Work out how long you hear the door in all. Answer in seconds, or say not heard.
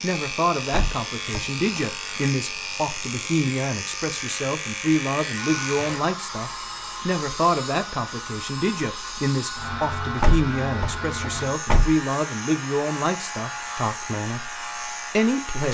3 s.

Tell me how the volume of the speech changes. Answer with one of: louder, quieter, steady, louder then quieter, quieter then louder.
steady.